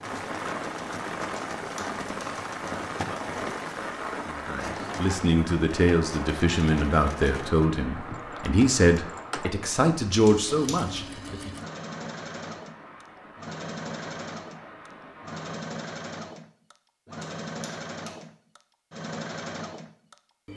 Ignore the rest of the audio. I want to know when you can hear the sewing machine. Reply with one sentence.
You can hear the sewing machine from 0.0 to 20.5 s.